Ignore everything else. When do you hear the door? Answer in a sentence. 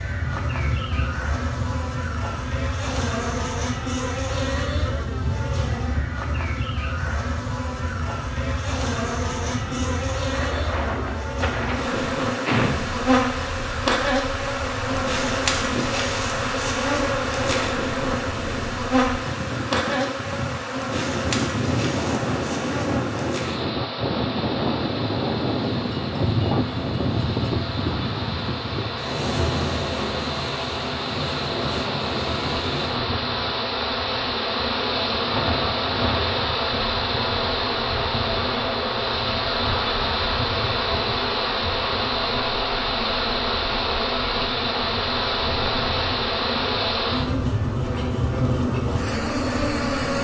You can hear the door from 11.3 to 12.9 s.